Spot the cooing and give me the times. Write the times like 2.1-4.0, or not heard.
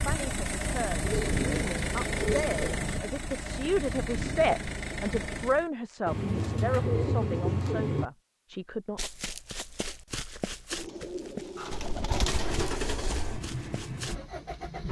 1.0-2.8, 6.0-8.1, 10.7-13.2.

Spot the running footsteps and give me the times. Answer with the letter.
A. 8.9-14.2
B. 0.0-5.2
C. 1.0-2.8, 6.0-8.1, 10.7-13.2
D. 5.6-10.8
A.